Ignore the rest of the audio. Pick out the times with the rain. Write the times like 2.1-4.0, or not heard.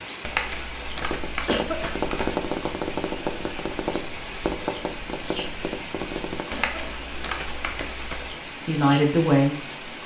0.0-10.0.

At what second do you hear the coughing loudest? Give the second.
2 s.